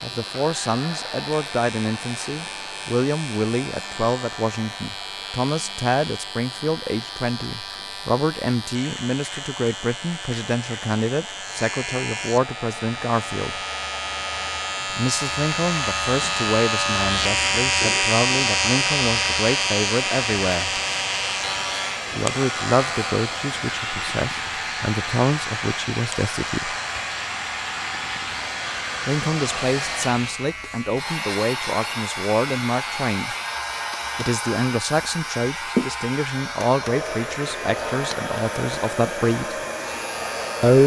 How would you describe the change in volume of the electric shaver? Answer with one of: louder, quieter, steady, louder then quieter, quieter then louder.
louder then quieter.